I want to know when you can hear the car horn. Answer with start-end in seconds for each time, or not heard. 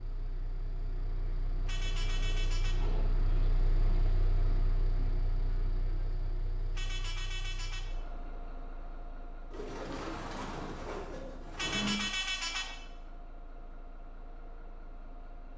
1.6-2.9, 6.8-7.9, 11.6-12.8.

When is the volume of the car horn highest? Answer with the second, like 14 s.
12 s.